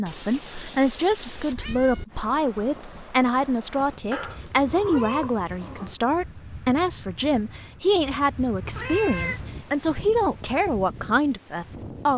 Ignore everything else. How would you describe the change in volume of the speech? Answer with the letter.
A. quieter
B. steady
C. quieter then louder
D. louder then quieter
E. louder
B.